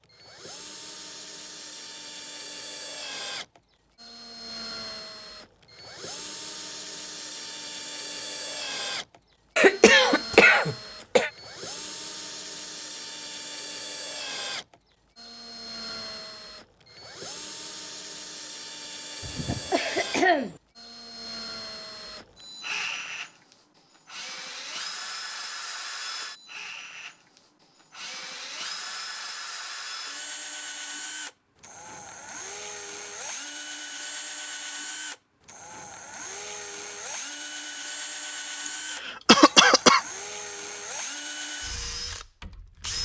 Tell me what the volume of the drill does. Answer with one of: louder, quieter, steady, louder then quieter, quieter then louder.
steady.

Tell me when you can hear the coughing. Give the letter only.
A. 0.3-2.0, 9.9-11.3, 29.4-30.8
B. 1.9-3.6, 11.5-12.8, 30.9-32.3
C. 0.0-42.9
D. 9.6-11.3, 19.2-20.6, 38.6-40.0
D.